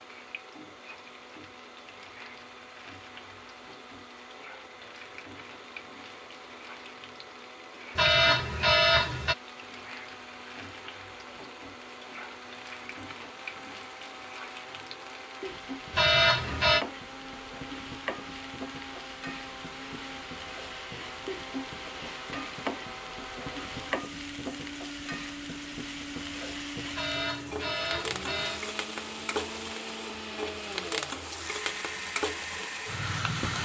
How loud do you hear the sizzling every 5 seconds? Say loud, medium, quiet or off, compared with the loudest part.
quiet, quiet, medium, medium, loud, loud, loud.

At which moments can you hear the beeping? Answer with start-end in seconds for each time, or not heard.
8.0-9.3, 15.9-16.9, 26.9-28.6.